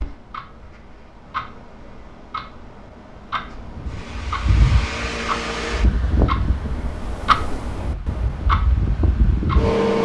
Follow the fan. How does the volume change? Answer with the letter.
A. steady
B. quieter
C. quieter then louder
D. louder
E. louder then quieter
C.